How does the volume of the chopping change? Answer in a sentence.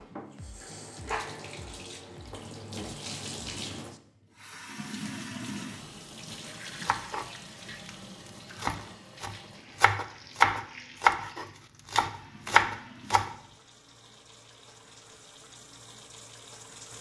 The volume of the chopping goes up.